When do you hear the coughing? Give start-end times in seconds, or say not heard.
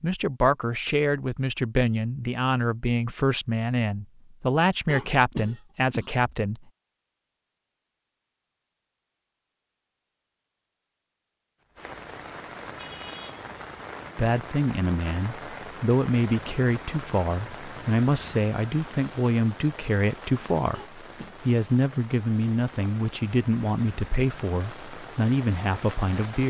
4.8-6.1, 20.7-21.4.